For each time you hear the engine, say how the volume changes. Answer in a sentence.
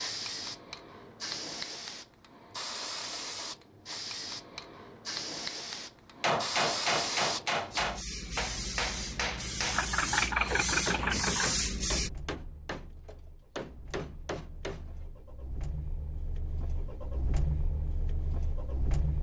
The engine can be heard from 9.7 to 19.1 s, getting quieter then louder.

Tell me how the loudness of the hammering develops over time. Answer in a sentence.
The loudness of the hammering goes down.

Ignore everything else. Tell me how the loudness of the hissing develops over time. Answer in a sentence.
The loudness of the hissing goes up.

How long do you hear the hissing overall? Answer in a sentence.
The hissing can be heard for 12 seconds in total.